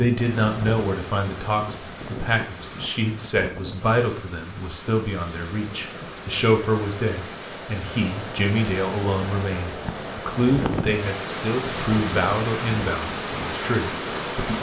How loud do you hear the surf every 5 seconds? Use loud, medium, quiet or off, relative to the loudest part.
medium, medium, loud.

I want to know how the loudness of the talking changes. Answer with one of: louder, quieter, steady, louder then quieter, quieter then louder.
steady.